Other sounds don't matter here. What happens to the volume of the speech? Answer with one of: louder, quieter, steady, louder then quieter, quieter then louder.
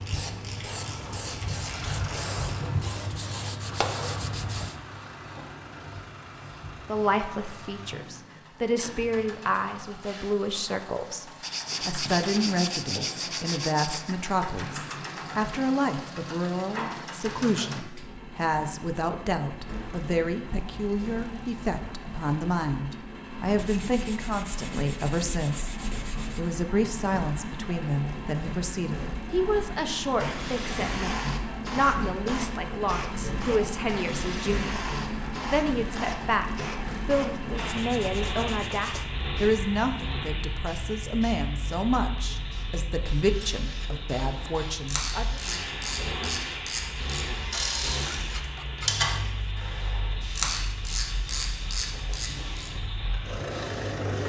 steady.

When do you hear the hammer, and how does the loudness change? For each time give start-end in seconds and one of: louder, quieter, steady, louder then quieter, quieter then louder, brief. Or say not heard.
not heard.